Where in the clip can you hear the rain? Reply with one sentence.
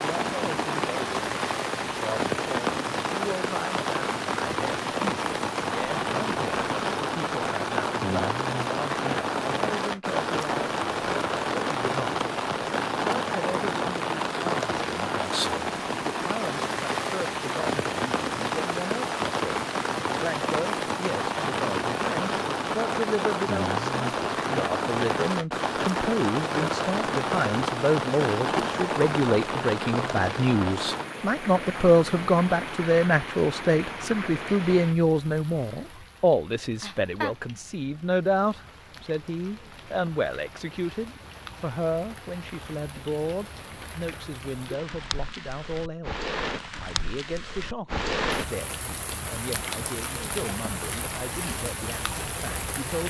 The rain can be heard from 0.0 to 53.0 s.